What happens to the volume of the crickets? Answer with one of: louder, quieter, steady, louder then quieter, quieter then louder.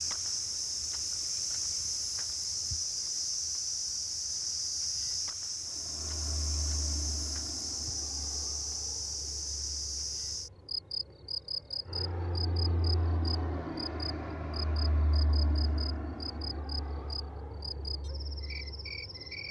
quieter.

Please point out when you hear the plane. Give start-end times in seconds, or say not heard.
5.7-19.4.